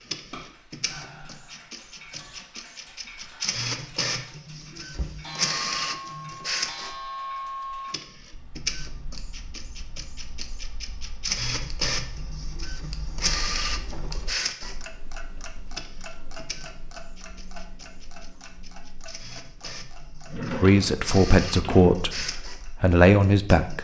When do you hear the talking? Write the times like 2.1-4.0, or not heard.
20.6-23.7.